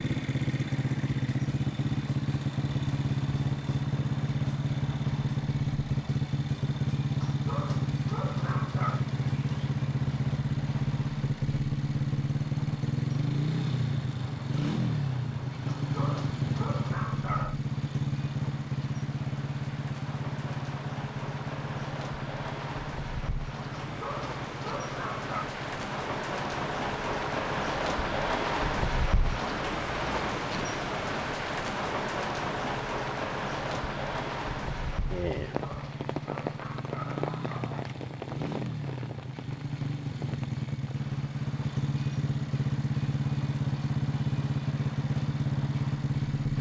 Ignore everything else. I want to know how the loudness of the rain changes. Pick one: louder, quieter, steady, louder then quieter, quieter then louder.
louder then quieter.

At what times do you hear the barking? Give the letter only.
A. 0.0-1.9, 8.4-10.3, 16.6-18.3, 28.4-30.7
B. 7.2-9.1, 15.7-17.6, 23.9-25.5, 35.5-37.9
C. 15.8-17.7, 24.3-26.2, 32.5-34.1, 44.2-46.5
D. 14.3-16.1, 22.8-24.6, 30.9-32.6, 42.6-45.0
B.